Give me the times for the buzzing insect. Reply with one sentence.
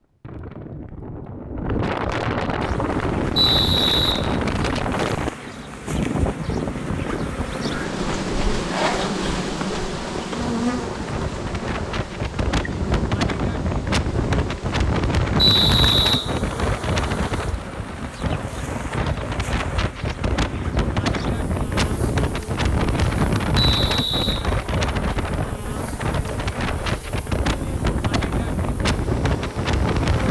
You can hear the buzzing insect from 2.6 to 30.2 s.